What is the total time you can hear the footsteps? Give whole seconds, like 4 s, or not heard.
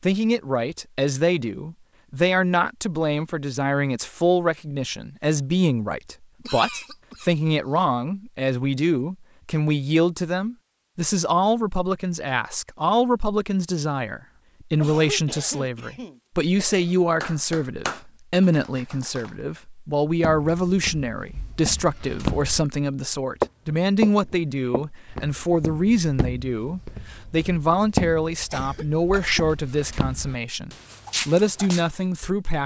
11 s.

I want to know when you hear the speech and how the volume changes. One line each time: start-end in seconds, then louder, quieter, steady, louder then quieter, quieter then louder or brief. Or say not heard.
0.0-32.6 steady.